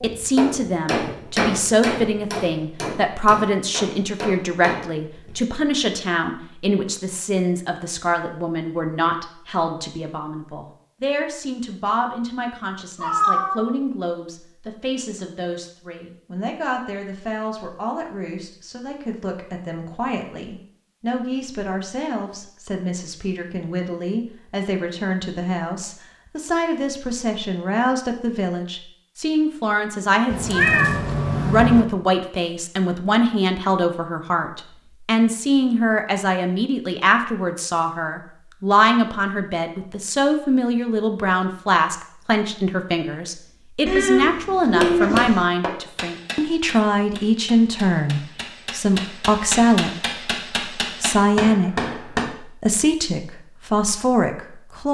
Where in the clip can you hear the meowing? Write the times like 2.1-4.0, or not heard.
13.0-13.7, 30.3-31.9, 43.9-45.5.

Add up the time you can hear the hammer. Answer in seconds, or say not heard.
13 s.